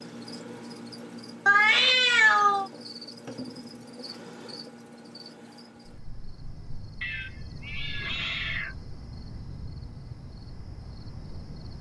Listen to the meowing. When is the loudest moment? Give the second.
2 s.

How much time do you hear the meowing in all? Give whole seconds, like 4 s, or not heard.
3 s.